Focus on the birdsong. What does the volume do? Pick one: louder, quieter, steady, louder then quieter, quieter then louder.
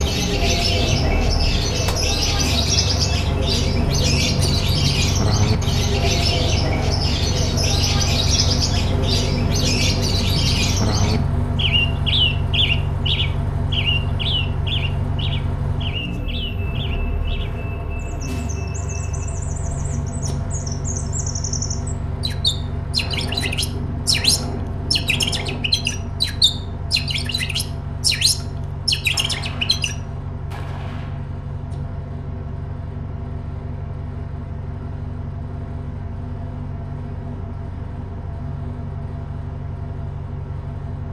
quieter then louder.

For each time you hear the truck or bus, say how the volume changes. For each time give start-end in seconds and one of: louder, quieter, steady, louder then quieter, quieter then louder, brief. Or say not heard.
0.0-41.0 quieter.